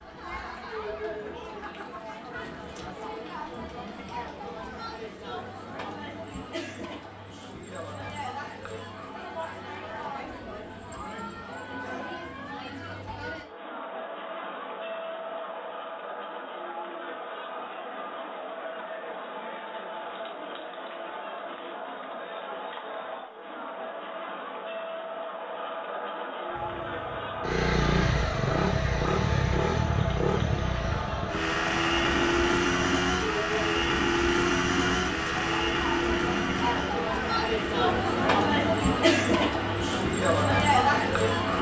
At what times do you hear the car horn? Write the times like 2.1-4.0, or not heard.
not heard.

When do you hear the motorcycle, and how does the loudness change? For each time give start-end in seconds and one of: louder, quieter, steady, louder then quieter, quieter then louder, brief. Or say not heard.
26.6-41.5 quieter.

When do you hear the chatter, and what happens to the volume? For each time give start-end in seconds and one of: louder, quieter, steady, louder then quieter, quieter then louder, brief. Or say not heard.
0.0-41.5 louder.